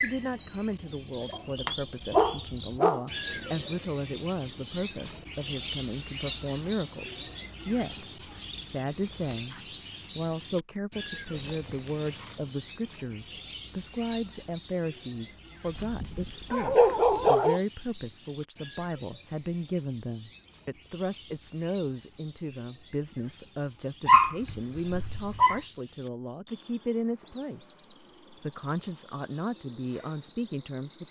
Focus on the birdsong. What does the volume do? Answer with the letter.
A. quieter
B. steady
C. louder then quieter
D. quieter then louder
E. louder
A.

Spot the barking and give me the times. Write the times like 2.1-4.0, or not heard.
1.3-3.6, 11.2-12.3, 15.7-17.6, 24.1-25.6.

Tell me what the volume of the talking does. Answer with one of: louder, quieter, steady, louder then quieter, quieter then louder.
steady.